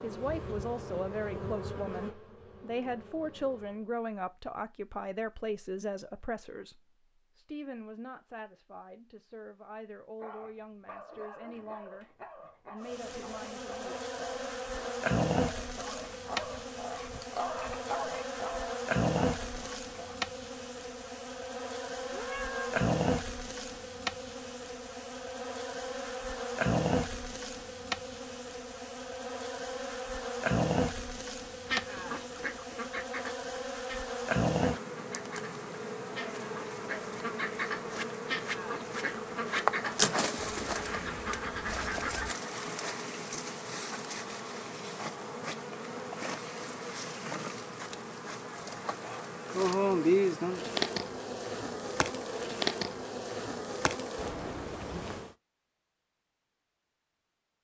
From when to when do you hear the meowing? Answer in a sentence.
You can hear the meowing from 22.1 to 22.9 s.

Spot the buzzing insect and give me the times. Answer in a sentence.
The buzzing insect can be heard from 0.0 to 3.9 s and from 12.8 to 55.4 s.